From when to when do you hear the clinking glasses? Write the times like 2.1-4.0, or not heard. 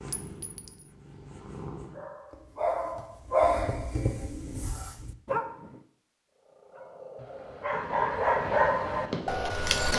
0.1-0.9.